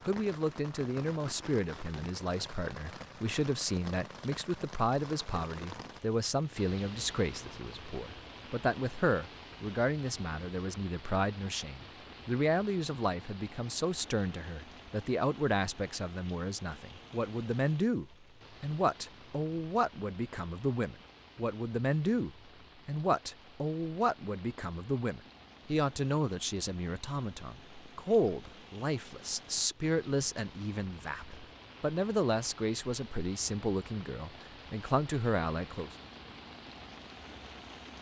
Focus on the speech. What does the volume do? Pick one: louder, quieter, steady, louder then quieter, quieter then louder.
steady.